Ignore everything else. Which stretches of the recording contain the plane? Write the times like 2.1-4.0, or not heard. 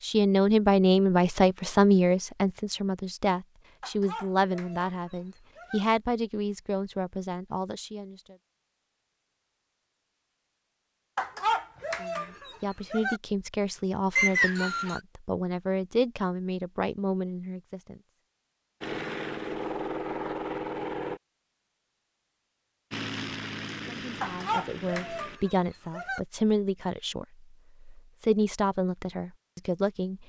18.8-21.2, 22.9-25.4.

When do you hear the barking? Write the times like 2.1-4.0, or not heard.
3.8-5.8, 11.2-13.2, 24.2-26.2.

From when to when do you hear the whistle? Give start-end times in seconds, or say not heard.
14.2-15.0.